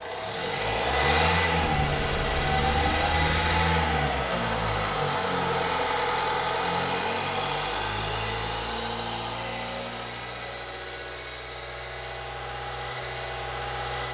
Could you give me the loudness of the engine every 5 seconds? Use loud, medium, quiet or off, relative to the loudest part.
loud, loud, medium.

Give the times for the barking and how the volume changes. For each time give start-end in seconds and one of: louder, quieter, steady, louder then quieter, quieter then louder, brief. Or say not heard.
not heard.